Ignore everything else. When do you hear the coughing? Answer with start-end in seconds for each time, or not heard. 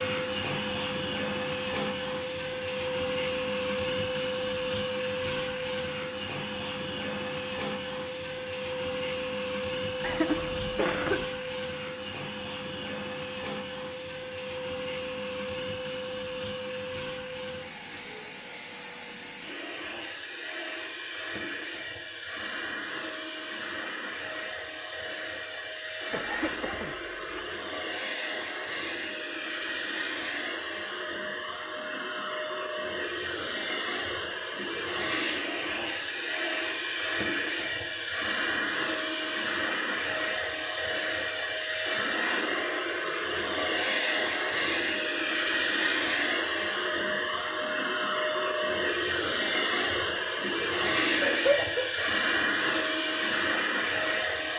10.0-11.2, 26.1-27.4, 51.2-52.1.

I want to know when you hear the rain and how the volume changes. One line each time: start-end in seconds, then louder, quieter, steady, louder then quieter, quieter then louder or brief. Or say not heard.
not heard.